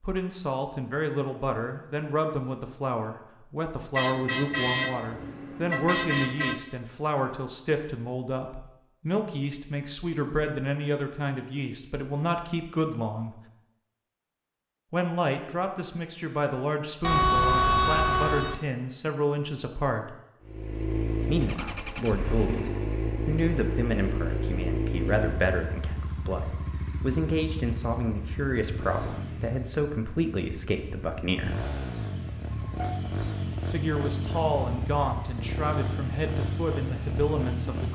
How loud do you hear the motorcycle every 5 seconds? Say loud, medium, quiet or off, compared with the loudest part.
off, off, off, off, loud, medium, loud, loud.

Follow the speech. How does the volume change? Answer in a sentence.
The volume of the speech stays about the same.